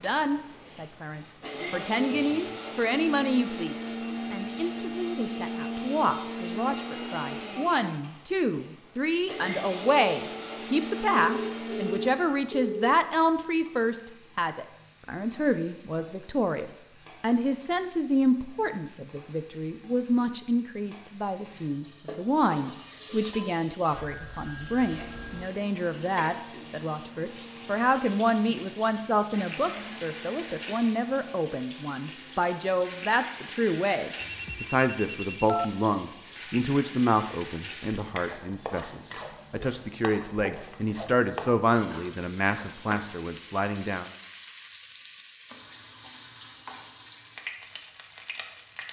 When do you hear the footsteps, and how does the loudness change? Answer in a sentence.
The footsteps can't be heard in this clip.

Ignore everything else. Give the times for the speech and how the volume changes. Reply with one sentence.
The speech can be heard from 0.0 to 44.1 s, at a steady volume.